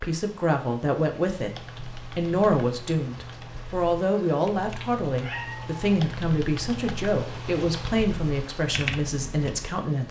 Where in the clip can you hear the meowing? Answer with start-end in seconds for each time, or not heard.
4.8-5.8.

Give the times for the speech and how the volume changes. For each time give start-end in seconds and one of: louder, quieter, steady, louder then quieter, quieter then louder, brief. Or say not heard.
0.0-10.0 steady.